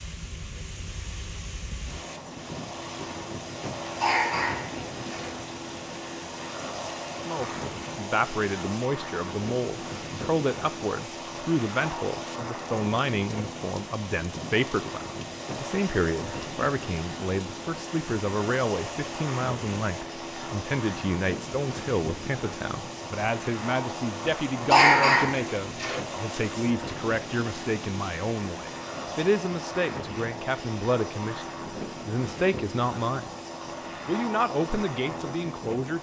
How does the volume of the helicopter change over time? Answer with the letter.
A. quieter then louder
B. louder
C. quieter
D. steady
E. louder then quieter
D.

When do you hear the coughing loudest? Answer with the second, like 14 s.
25 s.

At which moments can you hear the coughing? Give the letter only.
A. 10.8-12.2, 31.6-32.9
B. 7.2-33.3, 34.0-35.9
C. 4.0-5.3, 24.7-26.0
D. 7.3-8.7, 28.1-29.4
C.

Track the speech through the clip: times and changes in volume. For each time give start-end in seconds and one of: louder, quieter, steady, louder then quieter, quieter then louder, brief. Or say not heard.
7.2-33.3 steady
34.0-35.9 brief.